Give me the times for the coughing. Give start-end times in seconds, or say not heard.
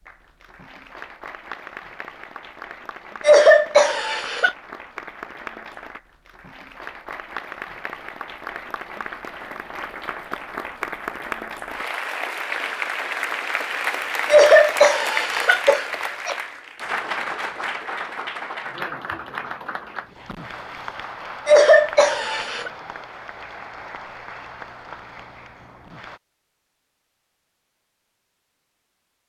3.2-4.5, 14.2-16.4, 21.4-22.7.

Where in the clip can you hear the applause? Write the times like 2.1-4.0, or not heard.
0.0-26.2.